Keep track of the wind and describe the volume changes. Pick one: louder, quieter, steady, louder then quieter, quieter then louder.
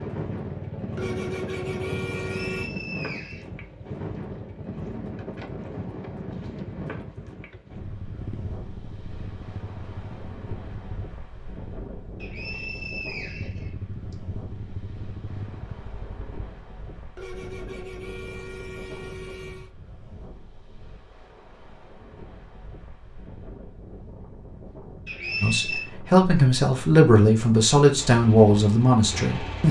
quieter.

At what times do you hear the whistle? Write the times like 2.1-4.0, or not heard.
2.4-3.5, 12.2-14.2, 25.1-25.9.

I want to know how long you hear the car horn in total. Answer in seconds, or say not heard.
4 s.